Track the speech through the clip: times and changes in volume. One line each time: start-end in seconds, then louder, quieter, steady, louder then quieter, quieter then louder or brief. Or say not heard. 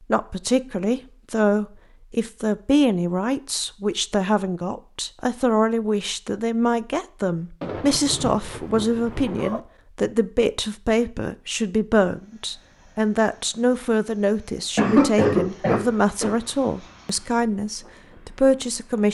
0.1-19.1 steady.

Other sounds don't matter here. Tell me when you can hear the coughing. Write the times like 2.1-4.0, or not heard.
14.8-16.3.